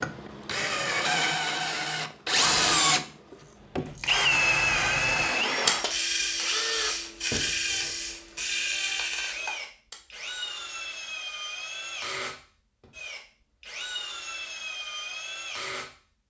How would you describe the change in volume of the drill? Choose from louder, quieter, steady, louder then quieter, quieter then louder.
quieter.